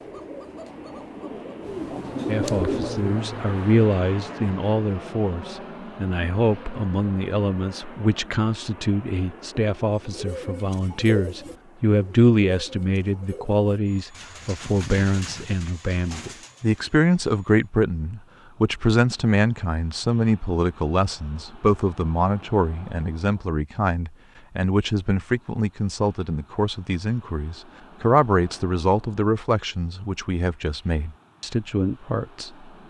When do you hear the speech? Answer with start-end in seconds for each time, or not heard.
2.2-32.7.